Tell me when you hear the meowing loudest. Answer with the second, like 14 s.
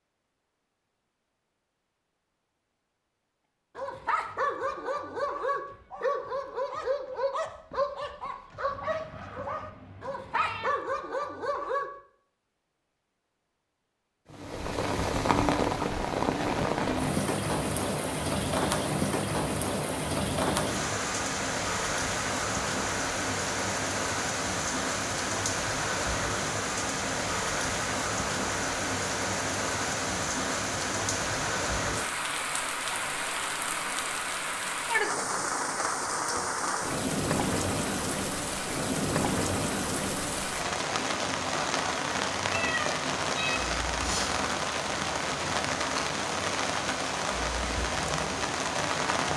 43 s.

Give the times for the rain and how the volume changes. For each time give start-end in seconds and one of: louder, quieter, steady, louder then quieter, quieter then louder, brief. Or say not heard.
14.3-49.3 steady.